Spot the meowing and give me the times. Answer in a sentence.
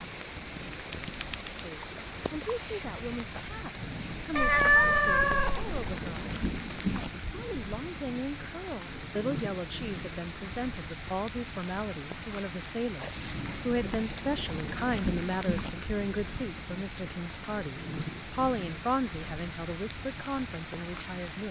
You can hear the meowing from 4.3 to 5.8 s.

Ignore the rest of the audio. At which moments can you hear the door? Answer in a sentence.
The door can't be heard in this clip.